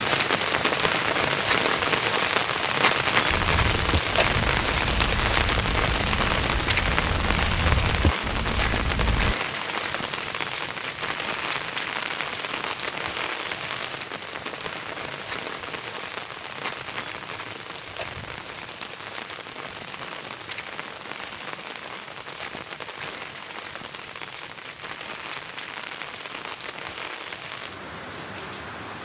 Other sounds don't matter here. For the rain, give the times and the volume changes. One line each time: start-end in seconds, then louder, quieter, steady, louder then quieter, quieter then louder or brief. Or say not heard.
0.0-29.0 quieter.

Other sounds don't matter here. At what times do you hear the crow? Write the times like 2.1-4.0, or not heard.
3.2-9.3.